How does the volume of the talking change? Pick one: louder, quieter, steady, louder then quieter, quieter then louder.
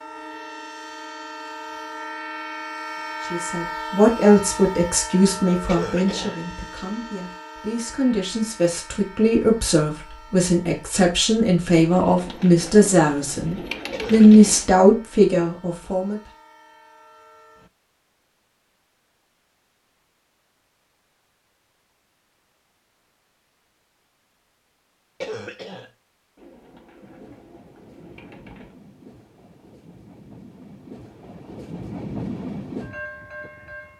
quieter then louder.